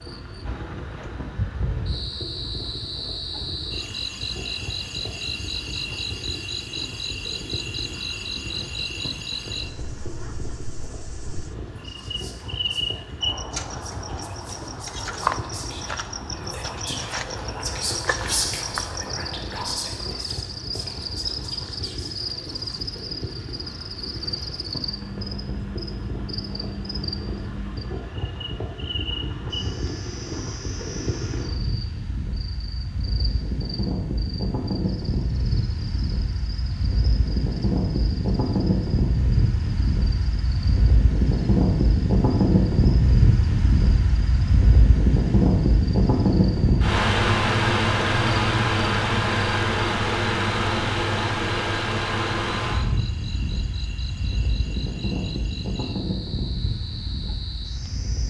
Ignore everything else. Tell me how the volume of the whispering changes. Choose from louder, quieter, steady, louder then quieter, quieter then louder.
louder then quieter.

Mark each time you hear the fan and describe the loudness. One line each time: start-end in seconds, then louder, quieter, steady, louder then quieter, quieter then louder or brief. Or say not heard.
0.0-58.2 louder.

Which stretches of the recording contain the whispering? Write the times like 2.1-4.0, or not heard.
11.7-22.9.